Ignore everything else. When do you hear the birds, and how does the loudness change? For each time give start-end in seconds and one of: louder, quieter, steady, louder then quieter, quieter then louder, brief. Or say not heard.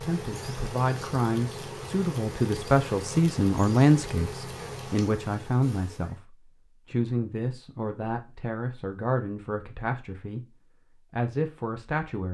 not heard.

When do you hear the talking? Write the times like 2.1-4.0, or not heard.
0.0-12.3.